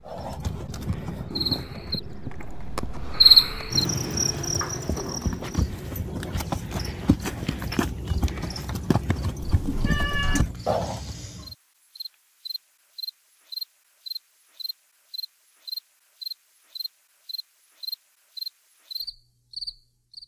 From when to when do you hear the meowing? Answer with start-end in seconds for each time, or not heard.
9.4-10.4.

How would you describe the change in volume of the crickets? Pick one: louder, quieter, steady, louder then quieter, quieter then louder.
quieter then louder.